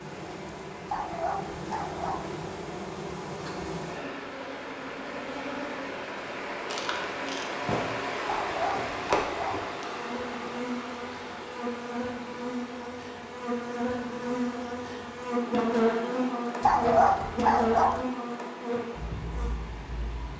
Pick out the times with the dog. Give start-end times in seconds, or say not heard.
0.9-2.3, 8.2-9.7, 16.6-18.1.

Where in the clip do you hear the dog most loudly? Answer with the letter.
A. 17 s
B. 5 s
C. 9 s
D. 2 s
A.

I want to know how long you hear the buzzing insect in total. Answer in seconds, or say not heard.
20 s.